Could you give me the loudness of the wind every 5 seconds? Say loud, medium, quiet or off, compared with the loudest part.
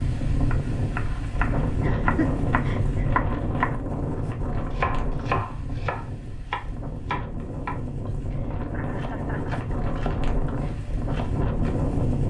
loud, medium, loud.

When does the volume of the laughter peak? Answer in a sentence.
The loudest moment of the laughter is at 2 seconds.